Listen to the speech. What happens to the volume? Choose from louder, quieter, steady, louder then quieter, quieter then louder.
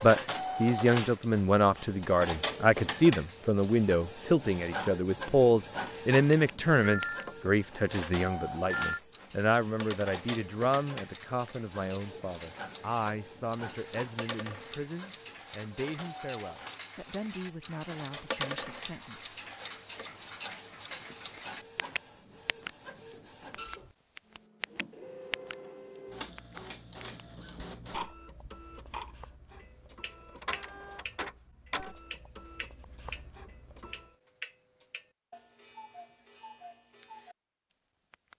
quieter.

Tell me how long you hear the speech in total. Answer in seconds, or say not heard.
19 s.